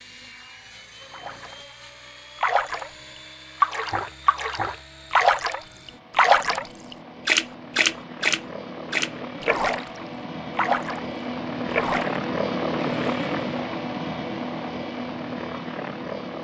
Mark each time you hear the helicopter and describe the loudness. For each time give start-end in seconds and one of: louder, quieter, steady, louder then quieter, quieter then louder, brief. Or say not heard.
0.0-16.3 louder.